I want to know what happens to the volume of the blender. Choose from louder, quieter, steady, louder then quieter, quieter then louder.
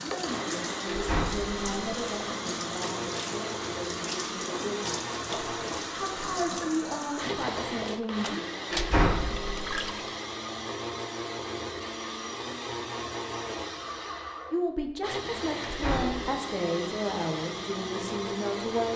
steady.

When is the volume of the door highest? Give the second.
9 s.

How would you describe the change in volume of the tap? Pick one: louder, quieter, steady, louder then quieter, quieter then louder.
steady.